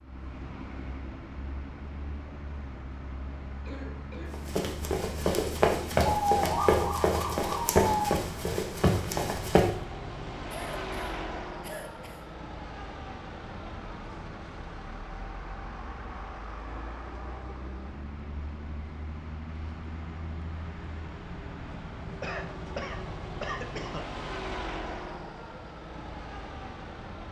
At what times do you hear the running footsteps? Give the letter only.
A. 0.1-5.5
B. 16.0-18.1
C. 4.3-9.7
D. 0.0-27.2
C.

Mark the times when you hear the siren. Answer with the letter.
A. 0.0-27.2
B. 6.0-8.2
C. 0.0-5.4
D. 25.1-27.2
B.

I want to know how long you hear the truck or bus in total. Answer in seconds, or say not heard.
27 s.